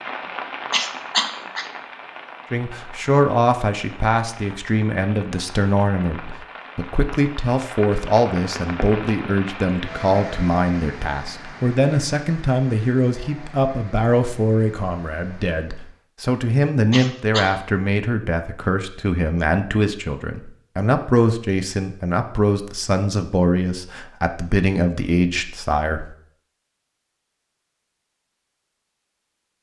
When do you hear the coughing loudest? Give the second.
1 s.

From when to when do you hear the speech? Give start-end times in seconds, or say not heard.
2.5-26.1.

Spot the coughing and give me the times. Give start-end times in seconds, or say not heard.
0.7-1.6, 16.9-17.5.